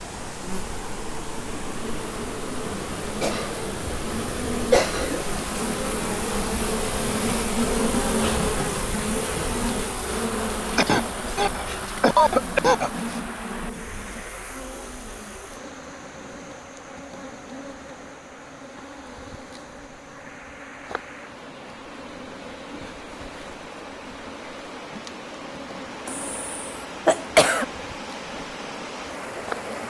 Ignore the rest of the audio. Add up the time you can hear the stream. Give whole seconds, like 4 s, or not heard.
30 s.